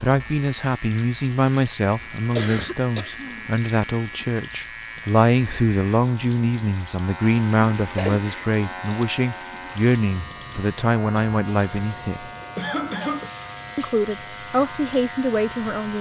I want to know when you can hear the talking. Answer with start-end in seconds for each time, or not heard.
0.0-12.2, 13.8-15.9.